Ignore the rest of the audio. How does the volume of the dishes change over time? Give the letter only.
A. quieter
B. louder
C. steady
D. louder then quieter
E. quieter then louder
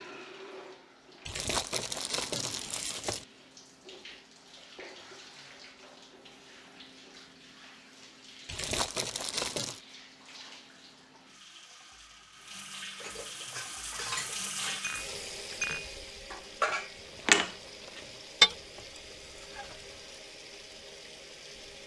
D.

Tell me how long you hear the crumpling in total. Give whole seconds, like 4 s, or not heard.
5 s.